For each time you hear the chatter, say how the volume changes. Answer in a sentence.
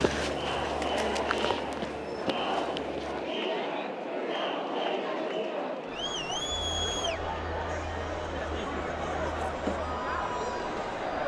The chatter can be heard from 0.0 to 11.2 s, at a steady volume.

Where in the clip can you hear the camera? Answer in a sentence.
You can hear the camera from 0.8 to 1.2 s.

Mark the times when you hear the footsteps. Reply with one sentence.
The footsteps can be heard from 0.0 to 3.4 s.